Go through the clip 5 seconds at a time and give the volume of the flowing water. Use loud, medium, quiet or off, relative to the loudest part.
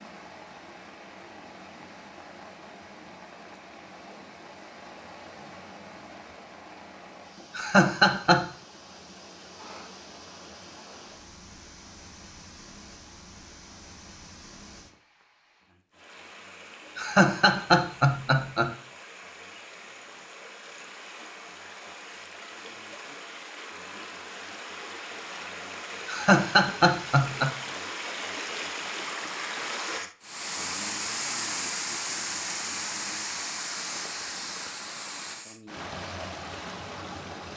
quiet, quiet, quiet, quiet, medium, loud, loud, medium.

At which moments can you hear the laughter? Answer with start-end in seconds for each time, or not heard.
7.5-8.4, 16.9-18.8, 26.1-27.6.